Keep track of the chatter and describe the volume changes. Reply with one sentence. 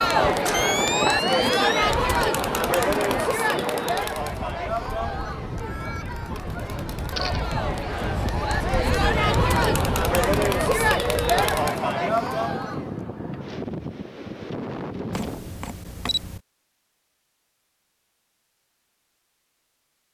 The volume of the chatter goes down, then up.